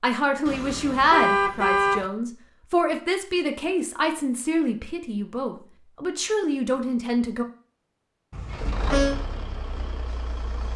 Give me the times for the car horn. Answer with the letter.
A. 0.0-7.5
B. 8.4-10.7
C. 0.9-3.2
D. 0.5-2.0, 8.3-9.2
D.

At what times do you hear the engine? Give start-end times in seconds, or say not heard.
8.4-10.7.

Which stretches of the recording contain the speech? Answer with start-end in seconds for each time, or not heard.
0.0-7.5.